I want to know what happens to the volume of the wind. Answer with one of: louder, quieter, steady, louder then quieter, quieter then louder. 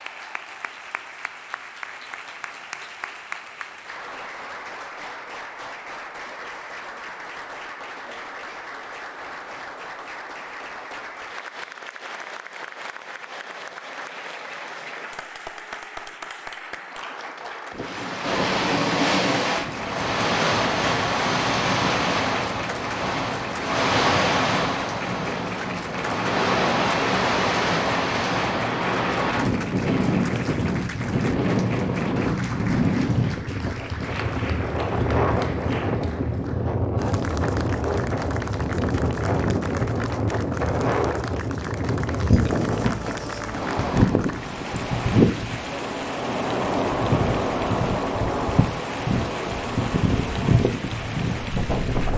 steady.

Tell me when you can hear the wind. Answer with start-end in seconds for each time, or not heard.
17.7-52.1.